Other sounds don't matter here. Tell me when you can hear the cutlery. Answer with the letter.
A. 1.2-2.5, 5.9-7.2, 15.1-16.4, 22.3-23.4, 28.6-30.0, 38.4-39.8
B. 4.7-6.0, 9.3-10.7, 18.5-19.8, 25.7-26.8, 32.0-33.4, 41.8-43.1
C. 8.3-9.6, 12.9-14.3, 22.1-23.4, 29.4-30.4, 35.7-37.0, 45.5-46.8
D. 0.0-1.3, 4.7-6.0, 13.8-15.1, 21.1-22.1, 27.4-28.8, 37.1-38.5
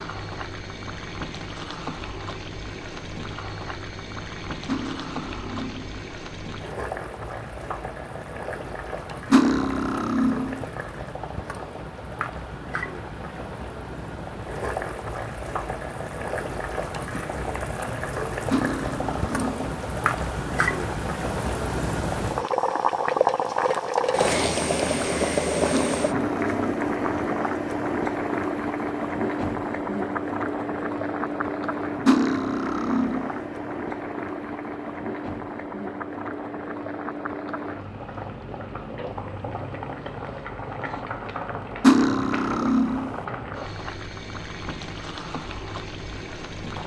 B.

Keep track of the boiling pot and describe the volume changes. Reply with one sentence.
The volume of the boiling pot goes up, then down.